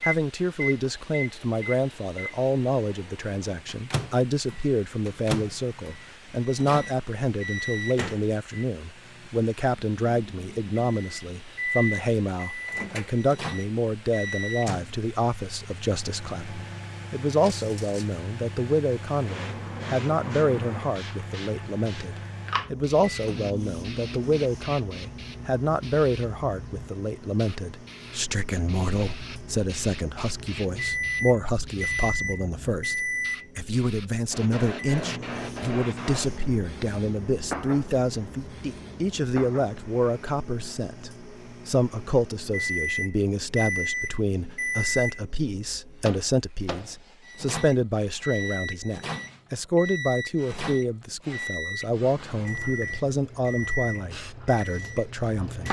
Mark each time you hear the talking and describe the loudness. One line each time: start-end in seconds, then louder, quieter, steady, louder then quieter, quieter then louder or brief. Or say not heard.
0.0-55.6 steady.